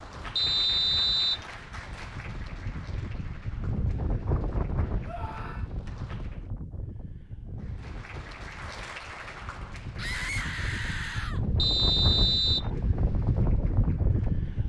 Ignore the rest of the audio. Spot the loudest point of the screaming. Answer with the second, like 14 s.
10 s.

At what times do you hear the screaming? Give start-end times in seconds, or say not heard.
5.0-5.7, 9.9-11.4.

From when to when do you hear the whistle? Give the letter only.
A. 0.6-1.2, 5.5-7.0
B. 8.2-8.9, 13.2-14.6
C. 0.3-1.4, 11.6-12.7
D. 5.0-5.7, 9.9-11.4
C.